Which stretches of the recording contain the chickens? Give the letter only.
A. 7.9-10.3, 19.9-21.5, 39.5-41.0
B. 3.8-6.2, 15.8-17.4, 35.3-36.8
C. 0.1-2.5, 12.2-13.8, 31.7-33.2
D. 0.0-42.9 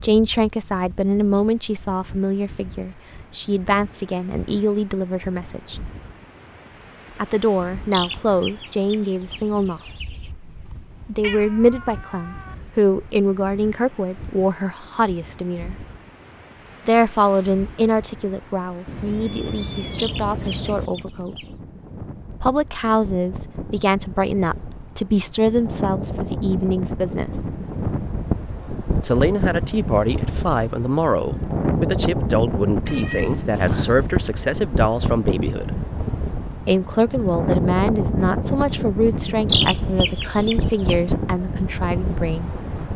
A.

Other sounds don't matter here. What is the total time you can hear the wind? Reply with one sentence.
You can hear the wind for 43 seconds altogether.